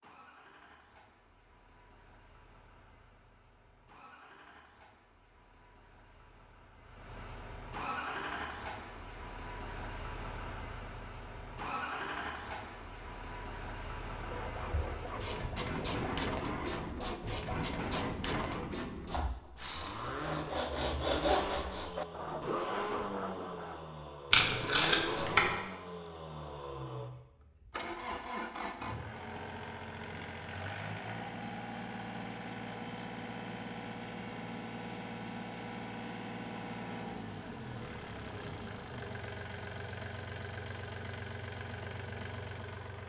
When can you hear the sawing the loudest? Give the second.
21 s.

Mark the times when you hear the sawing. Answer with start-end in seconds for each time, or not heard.
14.2-23.9.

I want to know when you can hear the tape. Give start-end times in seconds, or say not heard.
24.3-25.5.